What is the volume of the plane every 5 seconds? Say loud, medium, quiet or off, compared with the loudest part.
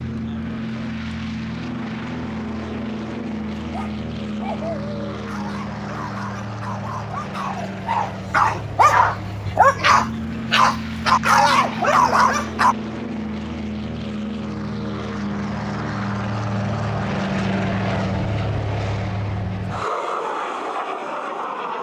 loud, medium, loud, loud, loud.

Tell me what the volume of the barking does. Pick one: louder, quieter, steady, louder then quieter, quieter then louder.
louder.